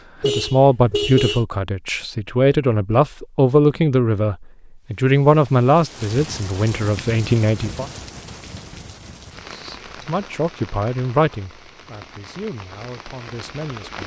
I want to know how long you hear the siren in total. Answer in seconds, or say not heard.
not heard.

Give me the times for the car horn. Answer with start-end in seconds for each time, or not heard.
0.2-1.4.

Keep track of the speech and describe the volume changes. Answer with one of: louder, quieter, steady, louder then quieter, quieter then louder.
quieter.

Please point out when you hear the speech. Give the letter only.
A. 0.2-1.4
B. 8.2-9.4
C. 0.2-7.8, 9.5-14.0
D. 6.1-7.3
C.